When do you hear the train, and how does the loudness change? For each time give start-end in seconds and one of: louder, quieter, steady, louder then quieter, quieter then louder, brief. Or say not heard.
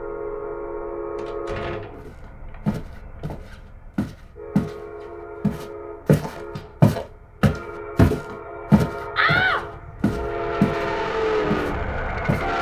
0.0-12.5 quieter then louder.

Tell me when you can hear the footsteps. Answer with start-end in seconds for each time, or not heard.
1.9-4.8, 5.4-10.8, 11.5-12.5.